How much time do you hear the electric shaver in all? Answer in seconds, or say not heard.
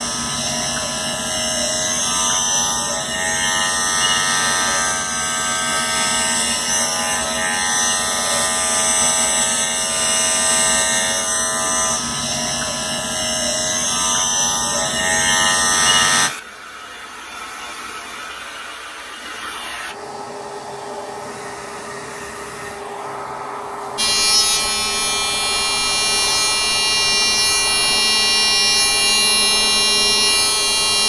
23 s.